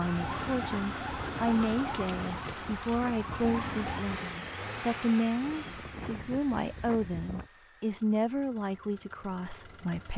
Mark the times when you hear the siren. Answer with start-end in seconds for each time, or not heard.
0.0-4.0.